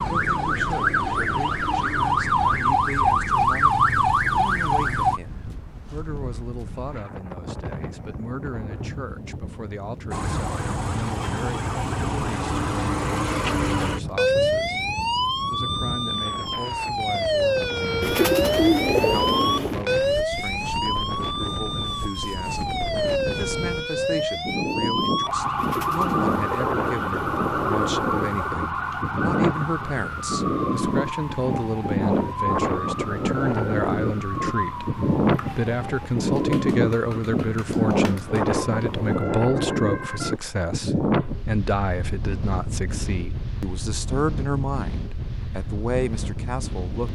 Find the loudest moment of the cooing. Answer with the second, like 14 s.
19 s.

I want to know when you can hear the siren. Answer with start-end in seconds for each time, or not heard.
0.0-5.2, 10.1-40.4.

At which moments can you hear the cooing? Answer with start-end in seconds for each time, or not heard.
18.0-19.8, 25.6-28.6.